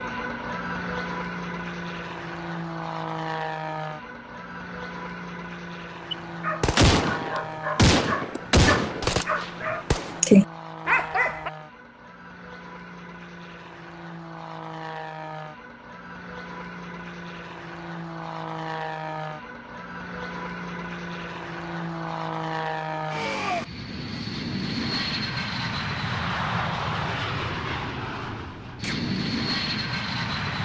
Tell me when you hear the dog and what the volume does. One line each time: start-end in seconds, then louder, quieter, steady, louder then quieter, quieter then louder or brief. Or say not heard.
6.1-11.5 louder.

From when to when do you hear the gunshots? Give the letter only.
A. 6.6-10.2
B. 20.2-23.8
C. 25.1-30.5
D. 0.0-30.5
A.